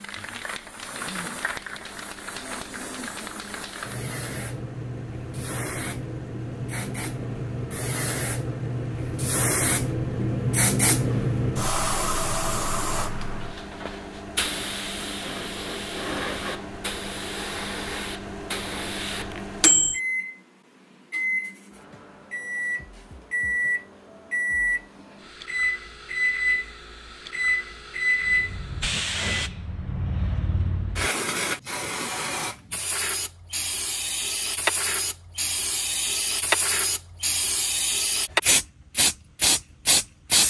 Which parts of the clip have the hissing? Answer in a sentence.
The hissing can be heard from 0.0 to 19.4 s and from 28.2 to 40.4 s.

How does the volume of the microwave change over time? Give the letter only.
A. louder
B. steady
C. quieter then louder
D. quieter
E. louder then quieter
A.